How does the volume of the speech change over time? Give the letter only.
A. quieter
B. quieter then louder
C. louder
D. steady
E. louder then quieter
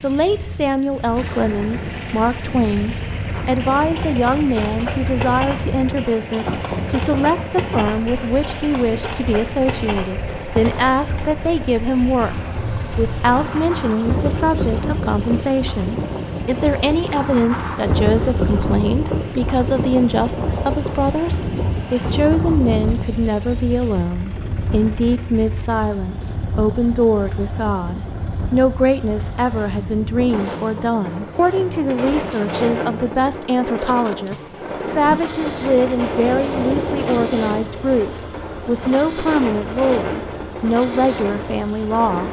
D.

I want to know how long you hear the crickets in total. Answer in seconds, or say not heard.
not heard.